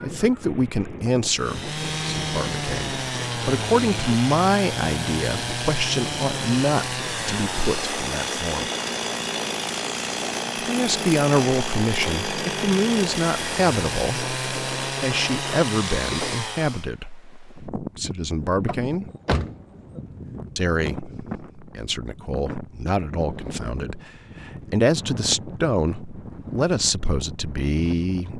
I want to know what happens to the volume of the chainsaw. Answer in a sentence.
The loudness of the chainsaw stays about the same.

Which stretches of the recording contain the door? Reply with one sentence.
The door can be heard from 18.6 to 20.0 s.